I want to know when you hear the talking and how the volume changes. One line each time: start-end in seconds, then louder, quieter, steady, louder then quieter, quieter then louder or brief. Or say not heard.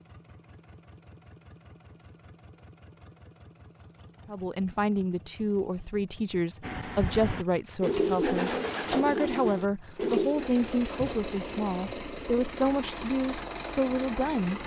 4.2-14.6 steady.